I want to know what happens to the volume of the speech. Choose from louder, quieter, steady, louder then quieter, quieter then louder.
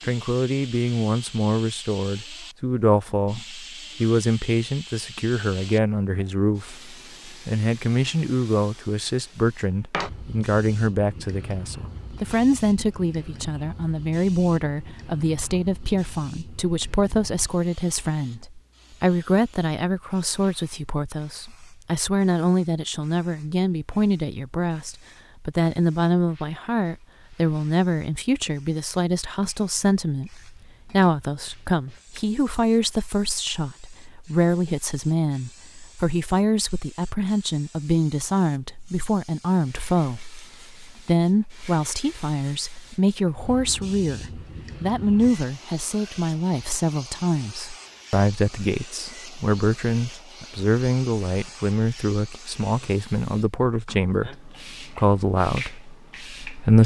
steady.